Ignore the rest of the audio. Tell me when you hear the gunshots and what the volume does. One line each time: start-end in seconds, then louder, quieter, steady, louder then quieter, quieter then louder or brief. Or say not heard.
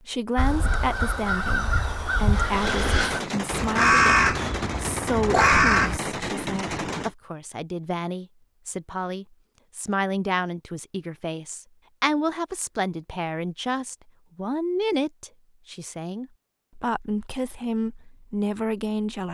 2.6-7.2 steady.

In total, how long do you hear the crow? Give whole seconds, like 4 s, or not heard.
6 s.